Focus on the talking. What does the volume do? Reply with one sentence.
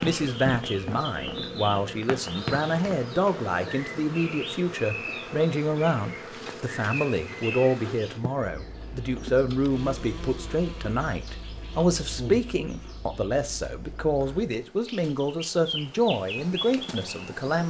The loudness of the talking stays about the same.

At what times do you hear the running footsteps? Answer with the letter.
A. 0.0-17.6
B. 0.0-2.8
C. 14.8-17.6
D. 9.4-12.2
B.